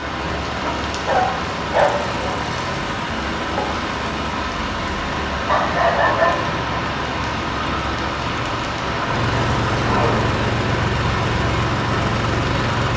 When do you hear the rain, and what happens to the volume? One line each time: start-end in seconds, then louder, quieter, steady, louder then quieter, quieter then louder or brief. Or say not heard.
0.0-12.9 steady.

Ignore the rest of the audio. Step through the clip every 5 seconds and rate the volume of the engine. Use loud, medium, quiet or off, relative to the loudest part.
medium, medium, loud.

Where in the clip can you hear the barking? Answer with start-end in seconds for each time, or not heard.
0.7-2.5, 5.5-6.5, 8.8-10.3.